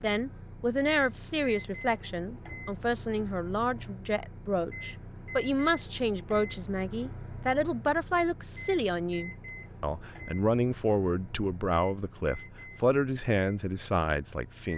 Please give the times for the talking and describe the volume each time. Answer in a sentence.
You can hear the talking from 0.0 to 14.7 s, at a steady volume.